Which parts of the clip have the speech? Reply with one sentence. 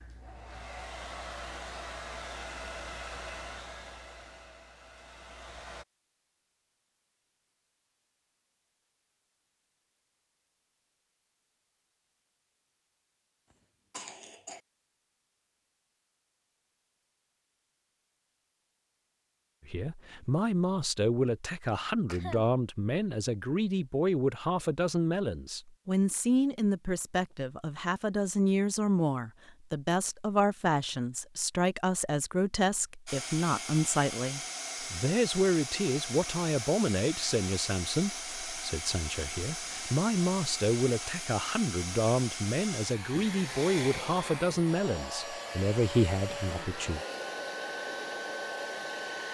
You can hear the speech from 19.6 to 47.0 s.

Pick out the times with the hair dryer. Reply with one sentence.
The hair dryer can be heard from 0.0 to 5.8 s and from 33.0 to 49.2 s.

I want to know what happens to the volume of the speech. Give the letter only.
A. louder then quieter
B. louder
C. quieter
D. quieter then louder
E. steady
E.